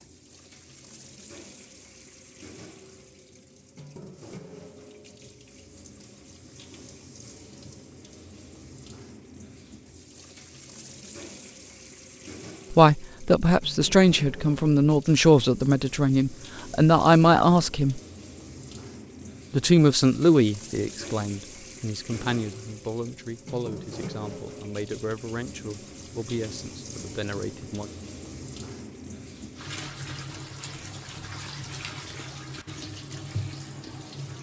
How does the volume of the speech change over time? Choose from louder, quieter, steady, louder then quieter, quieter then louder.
quieter.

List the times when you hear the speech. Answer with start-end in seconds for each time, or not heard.
12.7-18.0, 19.5-27.9.